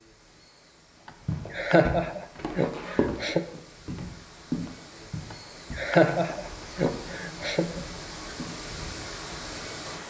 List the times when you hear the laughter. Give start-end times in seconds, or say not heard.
1.1-3.4, 5.3-7.8.